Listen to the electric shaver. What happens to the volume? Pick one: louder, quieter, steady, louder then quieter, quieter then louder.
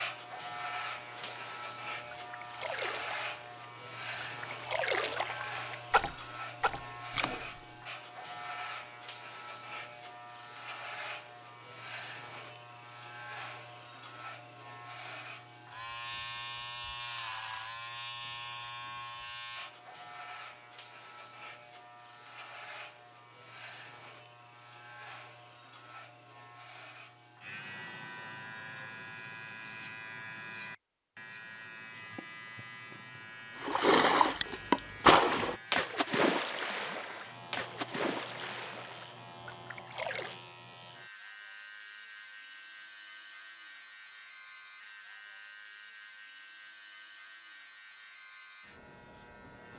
quieter.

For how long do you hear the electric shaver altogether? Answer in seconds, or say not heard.
50 s.